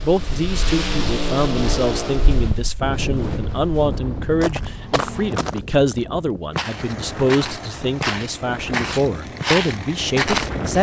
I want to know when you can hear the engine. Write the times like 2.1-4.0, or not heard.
0.0-2.5, 6.5-10.7.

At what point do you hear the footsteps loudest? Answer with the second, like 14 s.
10 s.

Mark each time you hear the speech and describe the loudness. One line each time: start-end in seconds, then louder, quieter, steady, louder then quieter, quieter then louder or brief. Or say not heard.
0.0-10.7 steady.